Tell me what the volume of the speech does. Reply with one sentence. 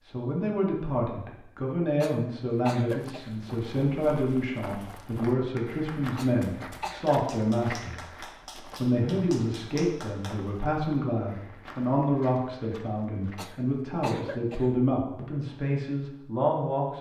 The volume of the speech stays about the same.